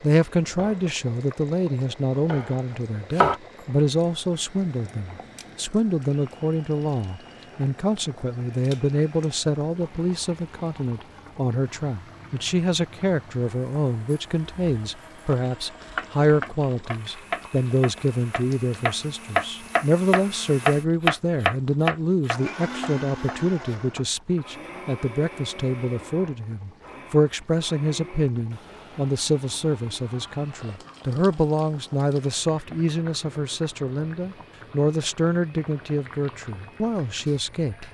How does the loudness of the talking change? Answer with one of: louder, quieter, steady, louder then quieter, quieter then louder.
steady.